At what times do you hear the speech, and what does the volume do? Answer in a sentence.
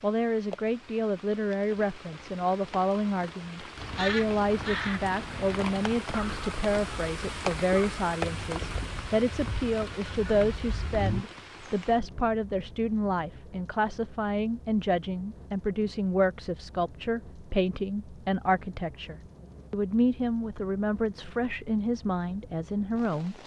You can hear the speech from 0.0 to 23.4 s, at a steady volume.